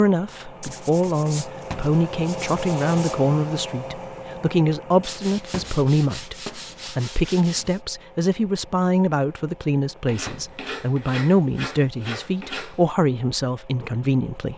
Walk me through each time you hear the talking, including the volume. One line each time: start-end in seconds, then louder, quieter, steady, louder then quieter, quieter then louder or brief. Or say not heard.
0.0-14.5 steady.